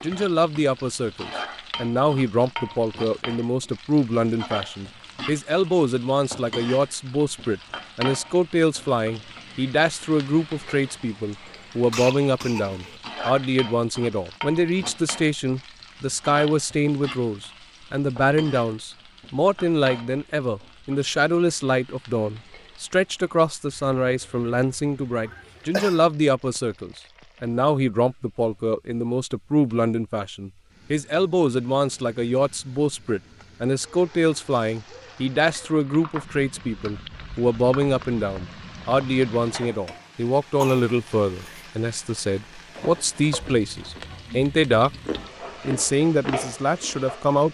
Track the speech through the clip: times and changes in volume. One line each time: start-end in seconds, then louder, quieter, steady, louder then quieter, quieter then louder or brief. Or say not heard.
0.0-44.9 steady
45.6-47.4 brief.